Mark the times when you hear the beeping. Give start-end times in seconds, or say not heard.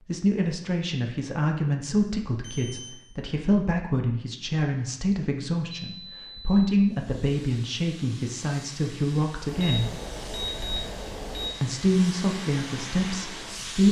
2.4-3.0, 5.8-6.7, 9.4-11.5.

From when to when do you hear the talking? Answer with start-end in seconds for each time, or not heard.
0.1-9.9, 11.6-13.8.